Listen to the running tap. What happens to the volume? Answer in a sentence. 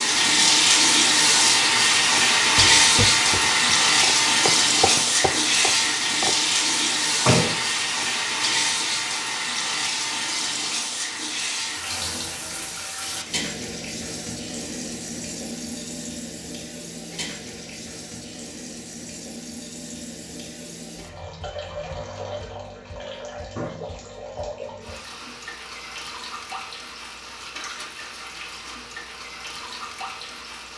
The volume of the running tap goes down.